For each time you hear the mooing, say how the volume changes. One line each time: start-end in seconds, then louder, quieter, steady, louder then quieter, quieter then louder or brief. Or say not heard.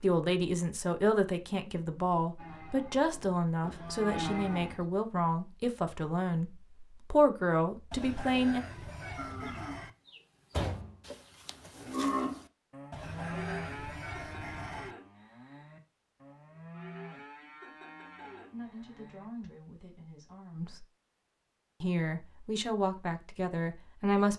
2.4-4.8 brief
9.2-19.5 louder then quieter.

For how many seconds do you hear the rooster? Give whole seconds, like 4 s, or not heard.
4 s.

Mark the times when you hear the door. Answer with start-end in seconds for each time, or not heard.
10.5-10.9.